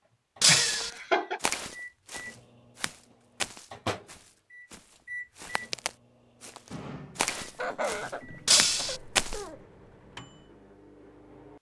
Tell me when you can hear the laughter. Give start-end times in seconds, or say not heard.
0.5-1.4, 7.4-9.6.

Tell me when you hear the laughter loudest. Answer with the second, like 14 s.
1 s.